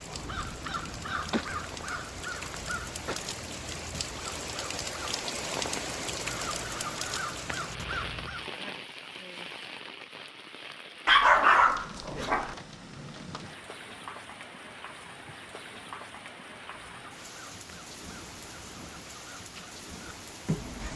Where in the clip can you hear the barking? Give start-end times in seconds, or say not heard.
11.1-12.6.